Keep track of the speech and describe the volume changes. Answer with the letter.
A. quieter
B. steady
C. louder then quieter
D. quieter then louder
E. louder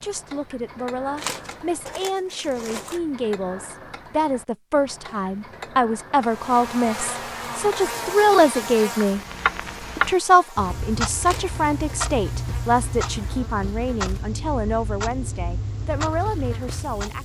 C.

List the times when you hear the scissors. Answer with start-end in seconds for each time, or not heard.
not heard.